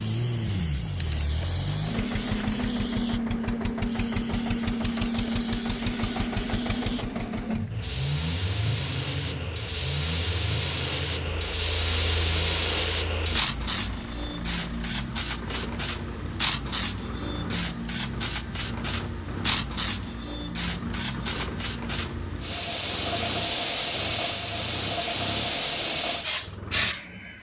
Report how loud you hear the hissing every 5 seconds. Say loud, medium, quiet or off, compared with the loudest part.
quiet, medium, loud, loud, loud, loud.